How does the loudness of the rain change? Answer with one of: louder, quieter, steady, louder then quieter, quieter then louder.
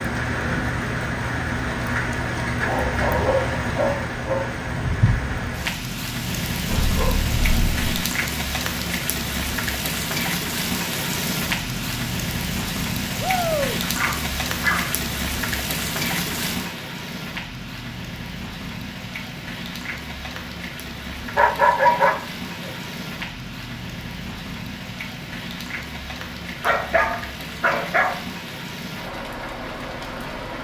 quieter.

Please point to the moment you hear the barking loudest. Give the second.
22 s.